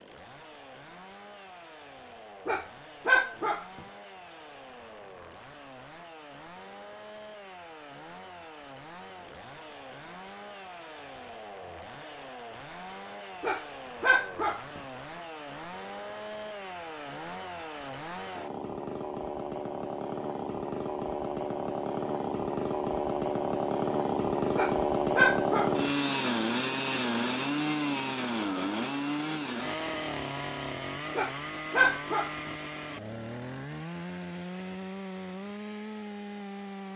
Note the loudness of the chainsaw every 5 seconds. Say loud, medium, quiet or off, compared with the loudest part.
quiet, quiet, quiet, medium, loud, loud, medium, medium.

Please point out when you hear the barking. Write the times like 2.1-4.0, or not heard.
2.5-3.6, 13.4-14.8, 24.6-25.9, 31.1-32.5.